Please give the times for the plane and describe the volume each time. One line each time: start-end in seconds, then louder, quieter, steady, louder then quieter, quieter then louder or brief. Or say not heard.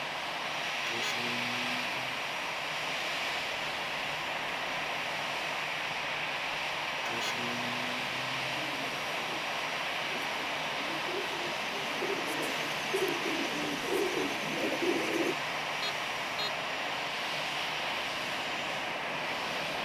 0.0-19.8 steady.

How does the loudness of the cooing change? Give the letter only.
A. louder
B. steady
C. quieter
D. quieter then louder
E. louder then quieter
A.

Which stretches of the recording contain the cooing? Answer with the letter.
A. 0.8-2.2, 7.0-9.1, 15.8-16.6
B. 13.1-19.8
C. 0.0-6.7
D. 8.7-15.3
D.